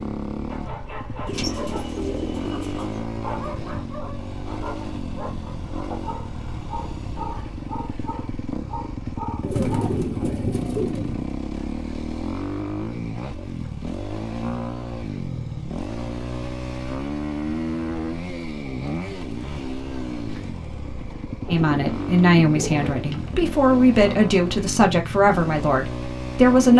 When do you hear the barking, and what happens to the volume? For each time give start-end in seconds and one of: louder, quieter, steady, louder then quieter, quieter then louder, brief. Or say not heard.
0.5-11.0 steady.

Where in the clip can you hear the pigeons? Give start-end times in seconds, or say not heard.
1.2-3.0, 9.4-11.3, 21.4-23.4.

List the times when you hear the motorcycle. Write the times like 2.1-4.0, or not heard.
0.0-26.7.